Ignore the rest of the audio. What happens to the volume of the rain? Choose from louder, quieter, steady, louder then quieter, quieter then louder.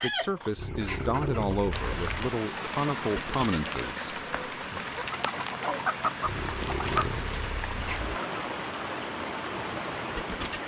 steady.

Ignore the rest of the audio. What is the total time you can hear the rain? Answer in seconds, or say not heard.
9 s.